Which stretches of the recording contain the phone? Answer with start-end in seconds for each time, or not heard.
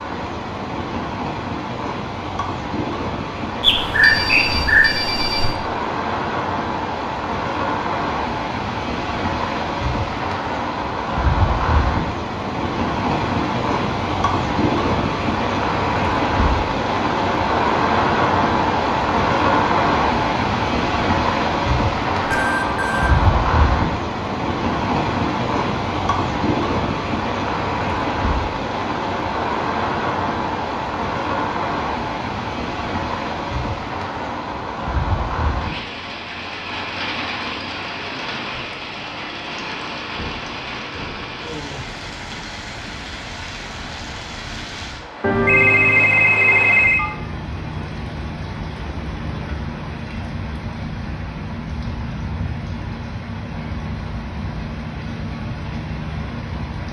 3.6-5.5, 22.2-23.1, 45.2-47.1.